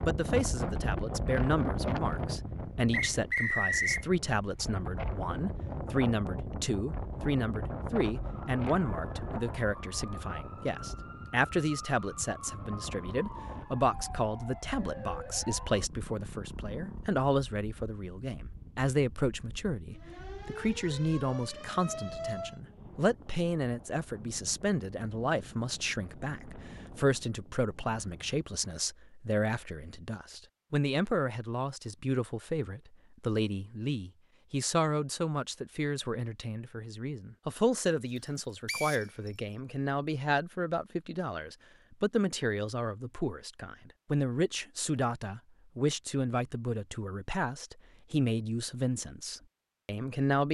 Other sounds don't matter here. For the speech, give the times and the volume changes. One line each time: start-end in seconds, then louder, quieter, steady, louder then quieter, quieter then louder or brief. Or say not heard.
0.0-50.4 steady.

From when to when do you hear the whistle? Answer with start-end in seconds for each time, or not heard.
2.9-4.0, 38.6-39.3.